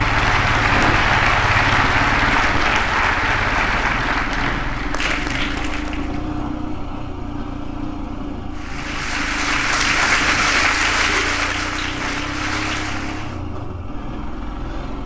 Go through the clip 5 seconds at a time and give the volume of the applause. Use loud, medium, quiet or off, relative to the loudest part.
loud, medium, loud.